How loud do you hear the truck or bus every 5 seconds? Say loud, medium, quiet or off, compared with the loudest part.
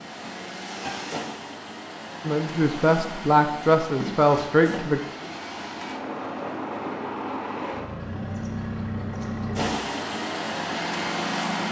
medium, loud, loud.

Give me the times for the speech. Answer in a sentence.
You can hear the speech from 2.2 to 5.0 s.